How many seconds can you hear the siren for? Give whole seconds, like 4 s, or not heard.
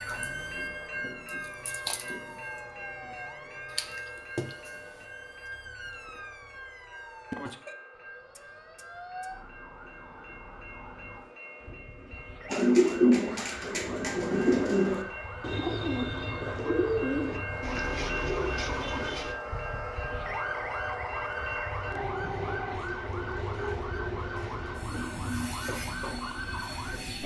27 s.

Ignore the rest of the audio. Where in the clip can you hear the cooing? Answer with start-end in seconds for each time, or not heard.
12.5-19.4.